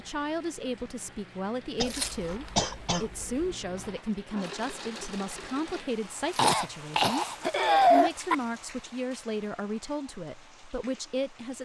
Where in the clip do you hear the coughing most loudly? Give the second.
8 s.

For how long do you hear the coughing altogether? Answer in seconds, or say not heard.
4 s.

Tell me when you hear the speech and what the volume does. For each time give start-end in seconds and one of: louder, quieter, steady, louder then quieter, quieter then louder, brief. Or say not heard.
0.0-11.6 steady.